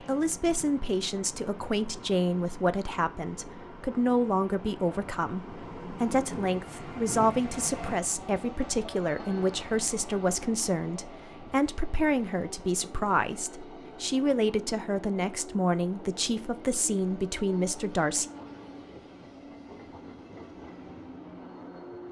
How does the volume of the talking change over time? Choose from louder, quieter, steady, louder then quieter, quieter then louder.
steady.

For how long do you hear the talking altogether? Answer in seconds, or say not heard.
18 s.